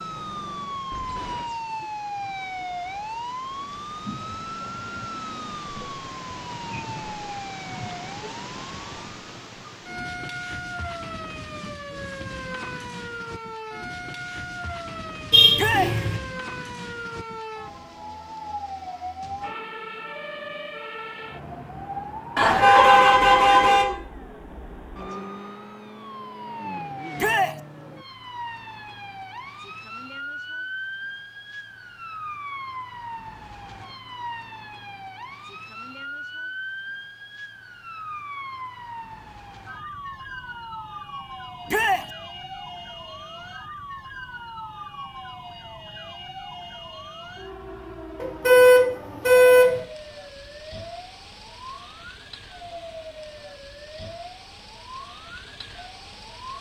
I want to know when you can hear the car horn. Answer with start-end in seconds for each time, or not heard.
15.3-16.1, 22.4-23.9, 48.2-49.8.